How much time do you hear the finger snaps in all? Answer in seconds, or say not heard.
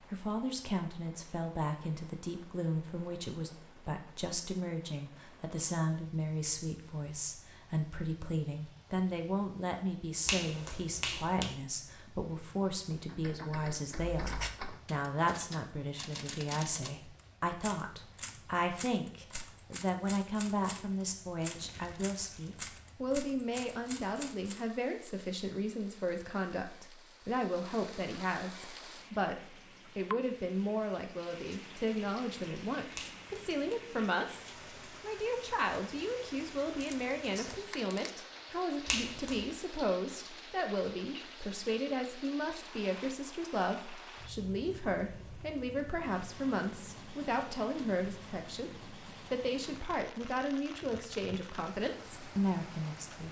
3 s.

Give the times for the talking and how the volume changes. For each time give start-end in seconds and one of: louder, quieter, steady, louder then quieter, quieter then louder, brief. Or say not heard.
0.1-53.2 steady.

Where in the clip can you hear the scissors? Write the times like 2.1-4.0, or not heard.
not heard.